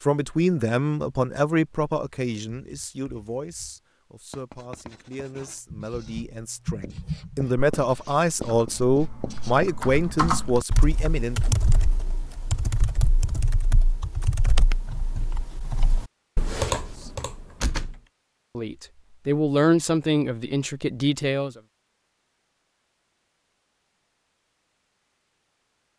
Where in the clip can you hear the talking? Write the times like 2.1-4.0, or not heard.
0.0-11.6, 18.6-21.6.